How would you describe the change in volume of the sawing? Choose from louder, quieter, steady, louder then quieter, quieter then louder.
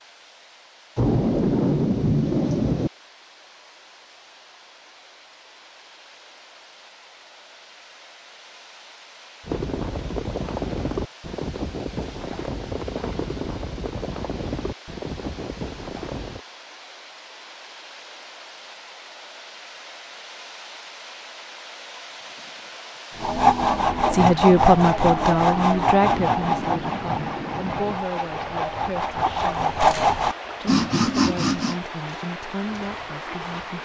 quieter then louder.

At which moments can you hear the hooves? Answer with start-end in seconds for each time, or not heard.
9.4-16.4.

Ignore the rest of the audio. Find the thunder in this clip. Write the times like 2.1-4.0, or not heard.
0.9-2.9, 26.0-27.9.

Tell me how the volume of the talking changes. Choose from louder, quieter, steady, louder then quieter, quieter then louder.
quieter.